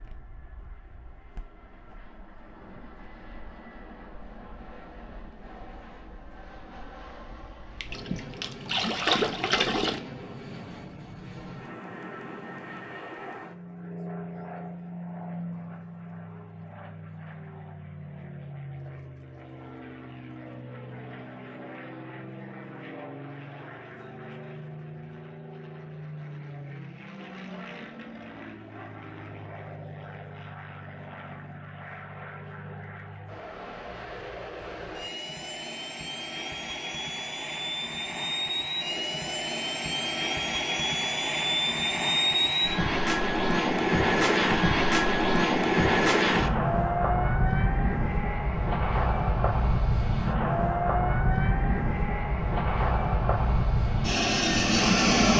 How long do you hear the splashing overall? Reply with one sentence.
The splashing can be heard for 2 seconds in total.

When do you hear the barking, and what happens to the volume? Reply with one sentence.
The barking can't be heard in this clip.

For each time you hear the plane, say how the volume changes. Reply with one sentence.
You can hear the plane from 0.0 to 55.3 s, getting louder.